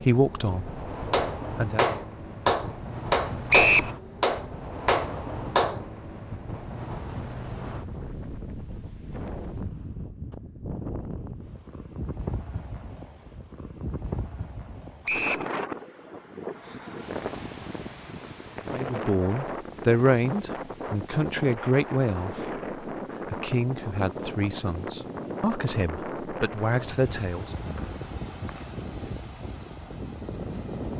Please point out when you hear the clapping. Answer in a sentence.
You can hear the clapping from 1.1 to 5.8 s.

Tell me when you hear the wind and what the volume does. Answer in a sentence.
You can hear the wind from 0.0 to 30.9 s, at a steady volume.